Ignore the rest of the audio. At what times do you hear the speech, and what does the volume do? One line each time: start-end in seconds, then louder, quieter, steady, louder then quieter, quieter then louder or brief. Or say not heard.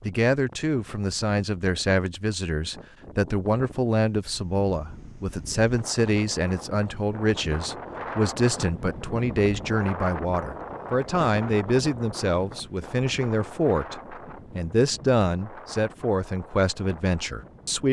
0.0-17.8 steady.